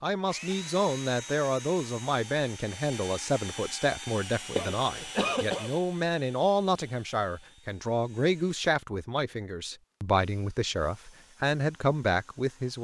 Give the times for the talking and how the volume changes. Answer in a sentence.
The talking can be heard from 0.0 to 12.7 s, at a steady volume.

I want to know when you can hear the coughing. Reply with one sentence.
You can hear the coughing from 4.5 to 5.7 s.